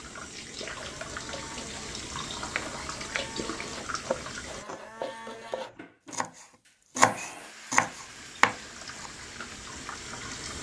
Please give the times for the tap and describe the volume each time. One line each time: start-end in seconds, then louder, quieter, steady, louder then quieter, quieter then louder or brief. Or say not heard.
0.0-4.7 steady
7.8-10.5 brief.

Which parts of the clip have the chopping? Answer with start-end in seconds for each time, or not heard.
2.5-9.1.